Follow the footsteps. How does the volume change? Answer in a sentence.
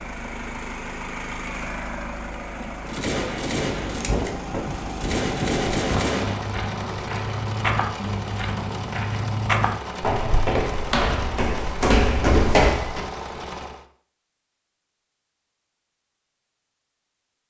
The loudness of the footsteps goes up.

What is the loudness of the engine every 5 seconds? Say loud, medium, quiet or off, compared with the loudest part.
loud, loud, loud, off.